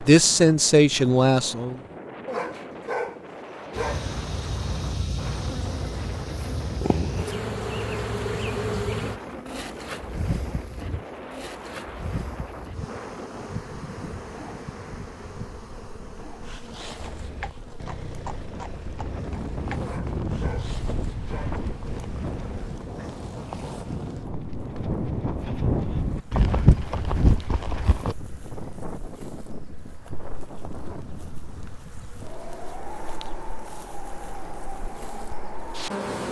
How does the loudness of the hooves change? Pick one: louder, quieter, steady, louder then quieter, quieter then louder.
louder.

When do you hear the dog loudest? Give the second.
3 s.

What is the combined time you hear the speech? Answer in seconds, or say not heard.
2 s.